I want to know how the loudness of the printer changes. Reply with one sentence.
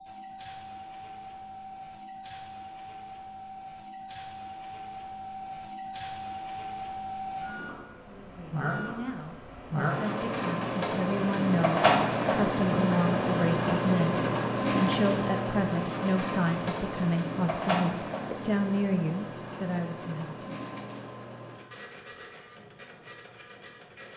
The loudness of the printer goes up, then down.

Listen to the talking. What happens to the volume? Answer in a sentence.
The volume of the talking goes up.